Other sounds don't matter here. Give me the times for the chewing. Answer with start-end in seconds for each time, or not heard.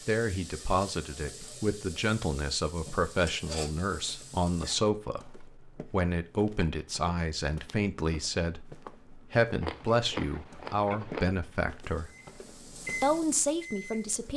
9.6-11.3.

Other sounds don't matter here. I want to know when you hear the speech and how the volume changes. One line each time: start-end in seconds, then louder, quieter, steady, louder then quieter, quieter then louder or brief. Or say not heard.
0.1-12.1 steady
13.0-14.3 brief.